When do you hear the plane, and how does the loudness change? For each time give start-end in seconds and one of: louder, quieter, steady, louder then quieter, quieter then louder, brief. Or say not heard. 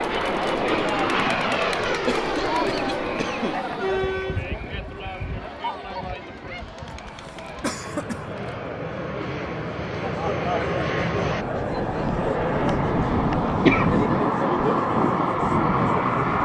0.0-16.4 quieter then louder.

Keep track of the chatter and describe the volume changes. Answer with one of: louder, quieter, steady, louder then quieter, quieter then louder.
quieter then louder.